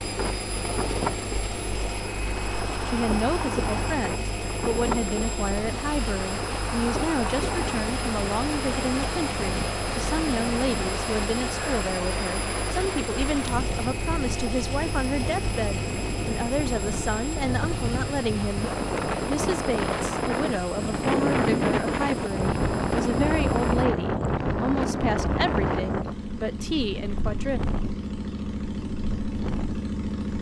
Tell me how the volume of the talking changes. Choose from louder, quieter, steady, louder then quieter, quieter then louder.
steady.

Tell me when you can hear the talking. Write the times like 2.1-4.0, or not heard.
2.9-27.6.